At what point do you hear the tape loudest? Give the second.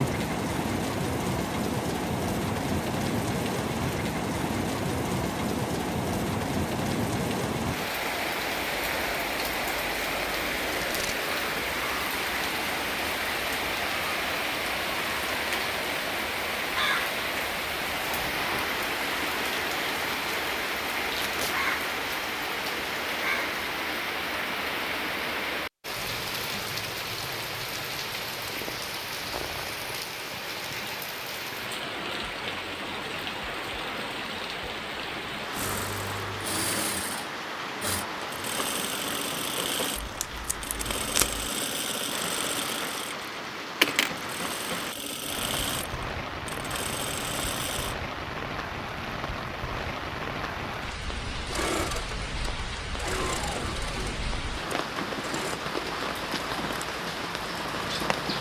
41 s.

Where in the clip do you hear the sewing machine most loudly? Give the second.
44 s.